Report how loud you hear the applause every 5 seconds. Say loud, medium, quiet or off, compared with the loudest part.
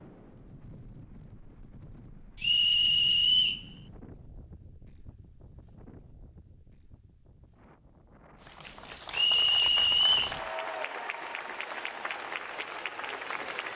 off, loud, loud.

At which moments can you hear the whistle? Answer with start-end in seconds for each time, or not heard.
2.4-3.6, 9.1-10.3.